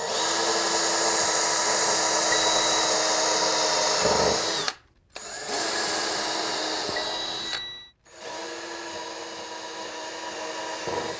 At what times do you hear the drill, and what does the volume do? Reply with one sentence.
You can hear the drill from 0.0 to 11.1 s, getting quieter.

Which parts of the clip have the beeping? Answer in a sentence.
The beeping can be heard from 2.2 to 2.9 s and from 6.9 to 7.9 s.